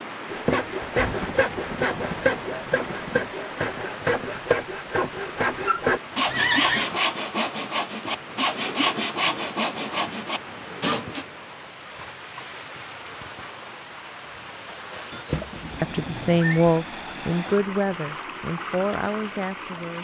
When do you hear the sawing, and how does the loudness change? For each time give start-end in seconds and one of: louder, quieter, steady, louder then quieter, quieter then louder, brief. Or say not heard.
0.2-11.2 steady.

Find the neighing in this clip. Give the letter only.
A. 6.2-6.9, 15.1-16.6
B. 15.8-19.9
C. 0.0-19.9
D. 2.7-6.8
A.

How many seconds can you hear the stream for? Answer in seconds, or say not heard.
20 s.